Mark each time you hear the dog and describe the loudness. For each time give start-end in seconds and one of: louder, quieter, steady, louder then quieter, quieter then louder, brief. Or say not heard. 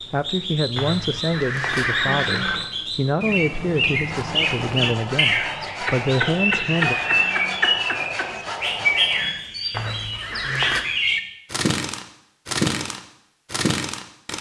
not heard.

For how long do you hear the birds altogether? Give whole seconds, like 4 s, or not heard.
14 s.